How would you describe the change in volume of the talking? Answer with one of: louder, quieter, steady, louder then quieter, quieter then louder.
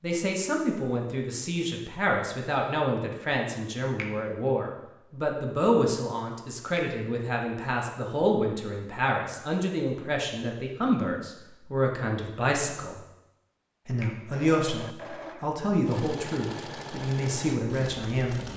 steady.